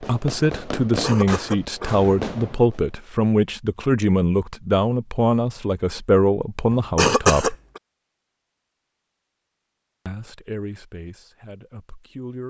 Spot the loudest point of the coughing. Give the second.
7 s.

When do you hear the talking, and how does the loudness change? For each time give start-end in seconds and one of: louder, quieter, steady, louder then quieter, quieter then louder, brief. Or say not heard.
0.0-7.5 steady
10.1-12.4 brief.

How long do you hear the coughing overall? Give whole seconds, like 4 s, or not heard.
3 s.